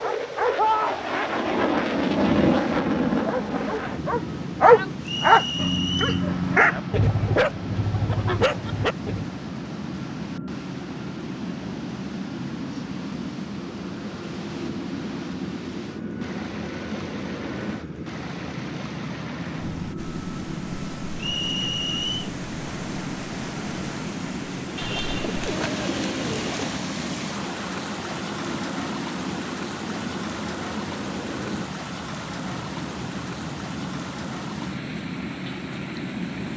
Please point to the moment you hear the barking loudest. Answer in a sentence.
The loudest moment of the barking is at 5 seconds.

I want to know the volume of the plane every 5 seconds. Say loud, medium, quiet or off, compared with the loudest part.
loud, medium, medium, medium, medium, medium, medium, medium.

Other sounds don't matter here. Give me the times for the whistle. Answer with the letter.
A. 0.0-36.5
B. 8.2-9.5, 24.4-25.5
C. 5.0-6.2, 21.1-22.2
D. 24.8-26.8
C.